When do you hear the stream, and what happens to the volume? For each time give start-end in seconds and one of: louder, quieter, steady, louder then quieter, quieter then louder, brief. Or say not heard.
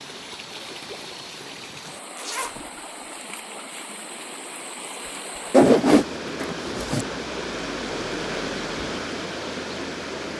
0.0-10.3 louder.